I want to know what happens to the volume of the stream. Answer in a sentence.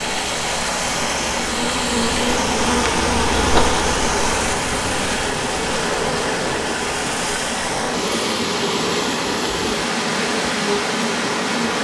The loudness of the stream stays about the same.